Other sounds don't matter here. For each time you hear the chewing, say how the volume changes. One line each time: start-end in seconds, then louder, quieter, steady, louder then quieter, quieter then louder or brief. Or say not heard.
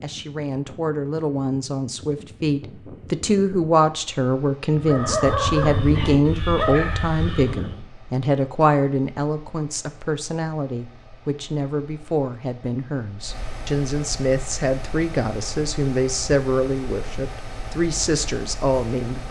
not heard.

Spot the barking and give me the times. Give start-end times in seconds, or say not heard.
4.7-7.8.